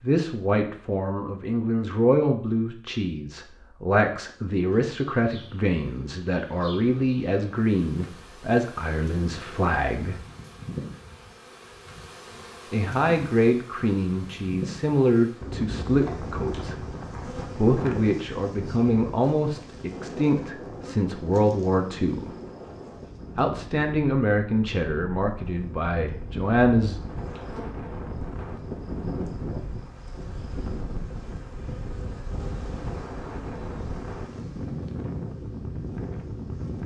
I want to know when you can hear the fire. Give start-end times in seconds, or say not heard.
not heard.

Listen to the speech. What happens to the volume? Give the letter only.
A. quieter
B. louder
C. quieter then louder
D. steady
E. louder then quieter
D.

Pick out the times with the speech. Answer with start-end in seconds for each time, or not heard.
0.0-10.2, 12.7-22.4, 23.4-27.0.